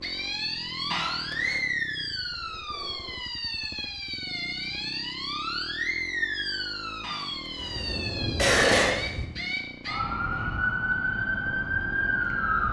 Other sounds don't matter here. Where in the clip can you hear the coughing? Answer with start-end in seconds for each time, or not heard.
0.9-1.6, 7.0-8.9.